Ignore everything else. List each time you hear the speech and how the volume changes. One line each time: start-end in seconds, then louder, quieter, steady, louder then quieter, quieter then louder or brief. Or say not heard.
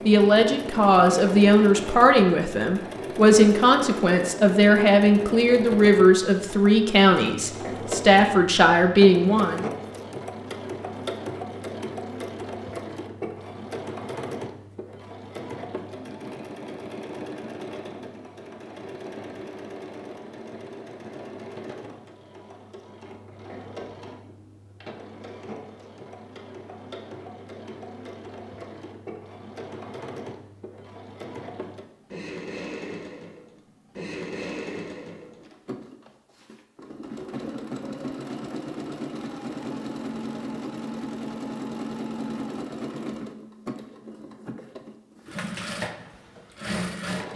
0.1-9.7 steady.